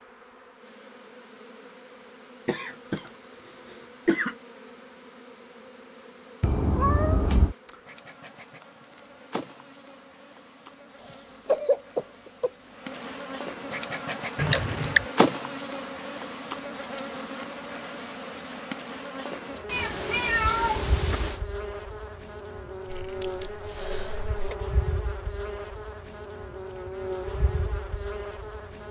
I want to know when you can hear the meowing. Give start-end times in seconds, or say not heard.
6.4-7.5, 14.3-15.1, 19.6-21.4.